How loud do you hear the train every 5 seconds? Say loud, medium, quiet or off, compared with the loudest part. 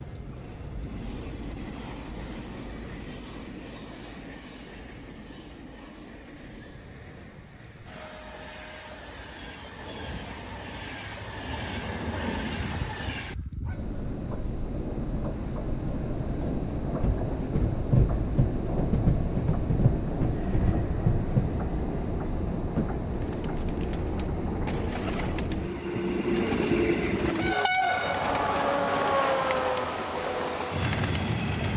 quiet, quiet, medium, loud, loud, loud, loud.